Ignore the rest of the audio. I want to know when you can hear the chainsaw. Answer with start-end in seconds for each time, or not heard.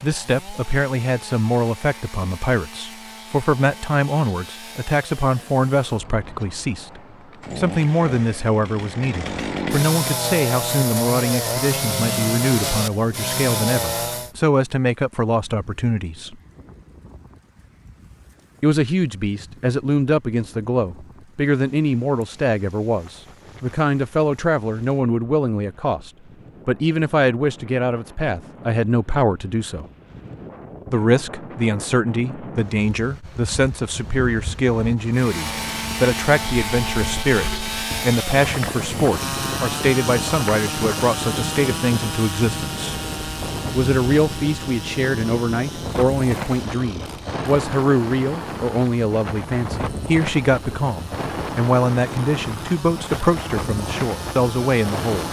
0.0-14.3, 35.1-55.2.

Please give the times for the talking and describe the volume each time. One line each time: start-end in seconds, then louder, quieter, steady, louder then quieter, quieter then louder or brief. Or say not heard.
0.0-16.4 steady
18.6-29.9 steady
30.9-43.0 steady
43.7-55.2 steady.